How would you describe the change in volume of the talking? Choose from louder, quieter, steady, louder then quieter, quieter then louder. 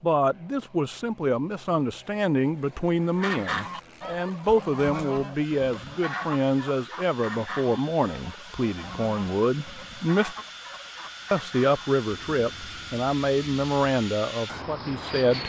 steady.